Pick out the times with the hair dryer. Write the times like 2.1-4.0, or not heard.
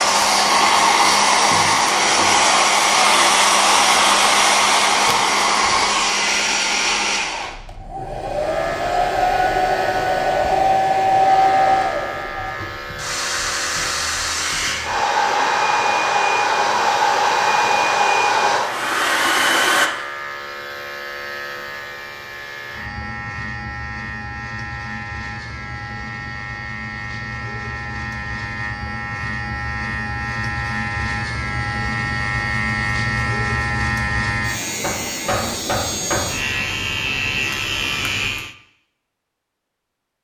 0.0-19.9.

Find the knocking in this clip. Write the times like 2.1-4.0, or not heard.
1.5-2.5, 34.8-36.5.